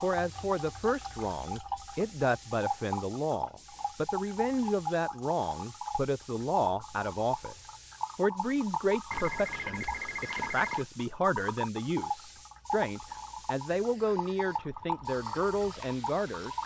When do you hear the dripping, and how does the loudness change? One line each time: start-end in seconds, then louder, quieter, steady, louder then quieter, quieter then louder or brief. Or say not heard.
0.0-16.6 steady.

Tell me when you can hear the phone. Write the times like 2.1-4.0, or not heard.
9.1-10.8.